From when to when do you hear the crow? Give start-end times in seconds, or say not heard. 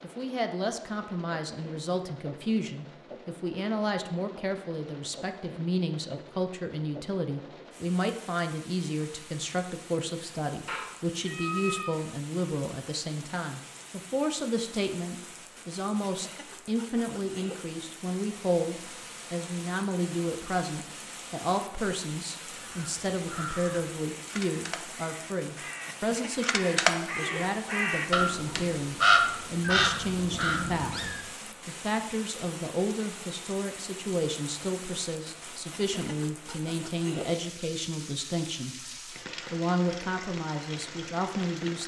22.4-30.9.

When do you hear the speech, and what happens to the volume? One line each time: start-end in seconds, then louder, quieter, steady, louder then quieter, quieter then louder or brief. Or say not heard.
0.0-41.8 steady.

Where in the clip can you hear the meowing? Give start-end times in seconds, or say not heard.
10.7-12.1, 29.6-31.2.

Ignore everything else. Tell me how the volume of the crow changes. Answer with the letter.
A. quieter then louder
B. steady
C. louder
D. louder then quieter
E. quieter
C.